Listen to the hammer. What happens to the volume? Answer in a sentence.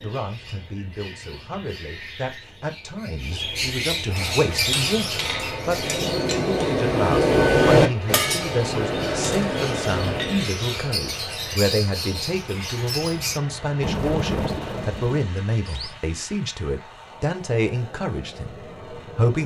The volume of the hammer goes up, then down.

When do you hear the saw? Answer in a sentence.
You can't hear the saw here.